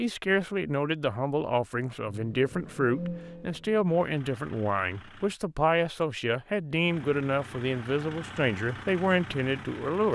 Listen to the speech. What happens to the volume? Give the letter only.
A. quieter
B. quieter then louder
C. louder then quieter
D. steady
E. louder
D.